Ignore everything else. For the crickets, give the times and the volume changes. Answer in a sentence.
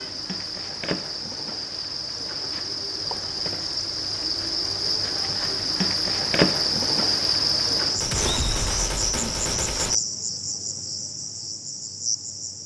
The crickets can be heard from 0.0 to 12.6 s, getting louder then quieter.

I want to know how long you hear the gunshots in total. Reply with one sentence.
You can hear the gunshots for 2 seconds altogether.